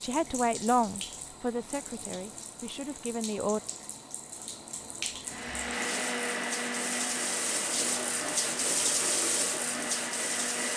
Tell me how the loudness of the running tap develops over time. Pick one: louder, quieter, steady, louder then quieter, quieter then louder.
louder.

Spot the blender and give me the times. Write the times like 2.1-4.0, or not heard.
5.2-10.7.